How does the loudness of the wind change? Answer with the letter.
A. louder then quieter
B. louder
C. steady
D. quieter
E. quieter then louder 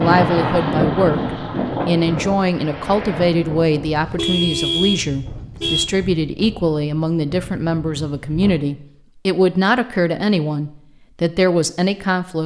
D.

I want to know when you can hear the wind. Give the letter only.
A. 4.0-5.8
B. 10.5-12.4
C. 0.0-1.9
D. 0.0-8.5
D.